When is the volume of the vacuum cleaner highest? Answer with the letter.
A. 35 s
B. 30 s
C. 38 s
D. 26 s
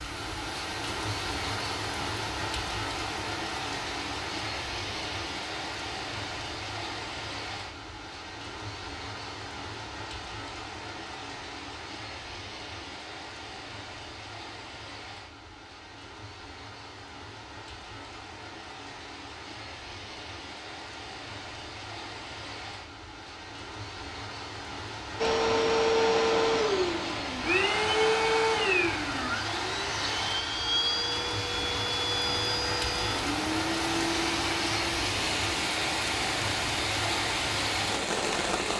D.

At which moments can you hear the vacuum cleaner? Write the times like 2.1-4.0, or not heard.
25.2-38.7.